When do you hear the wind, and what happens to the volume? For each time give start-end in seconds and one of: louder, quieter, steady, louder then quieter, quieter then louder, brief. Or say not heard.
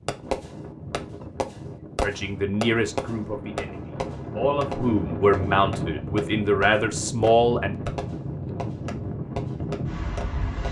0.0-10.6 louder.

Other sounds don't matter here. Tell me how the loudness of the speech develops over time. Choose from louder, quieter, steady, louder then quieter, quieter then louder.
quieter then louder.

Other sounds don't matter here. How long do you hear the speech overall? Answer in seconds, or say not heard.
6 s.